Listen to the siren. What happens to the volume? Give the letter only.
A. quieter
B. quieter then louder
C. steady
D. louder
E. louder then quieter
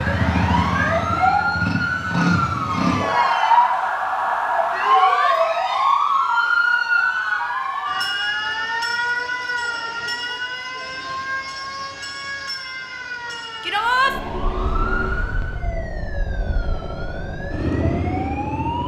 A.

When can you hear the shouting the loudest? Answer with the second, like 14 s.
14 s.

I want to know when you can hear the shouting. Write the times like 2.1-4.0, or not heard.
4.8-5.4, 13.6-14.2.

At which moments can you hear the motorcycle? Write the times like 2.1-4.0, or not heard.
0.0-3.0, 14.0-18.8.